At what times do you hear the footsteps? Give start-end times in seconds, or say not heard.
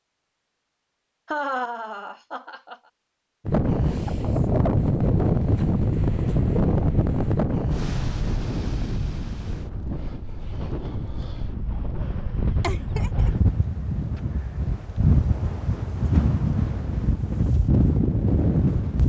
not heard.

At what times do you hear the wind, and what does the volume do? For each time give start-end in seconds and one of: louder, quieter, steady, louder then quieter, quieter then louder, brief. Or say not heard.
3.5-19.0 quieter then louder.